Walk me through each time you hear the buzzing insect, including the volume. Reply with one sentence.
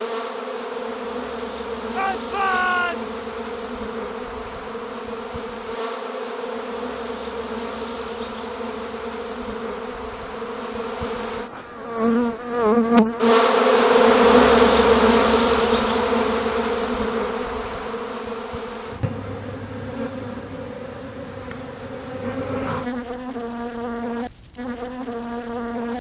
You can hear the buzzing insect from 0.0 to 25.9 s, getting louder then quieter.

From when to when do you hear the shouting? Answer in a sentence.
You can hear the shouting from 1.9 to 3.1 s.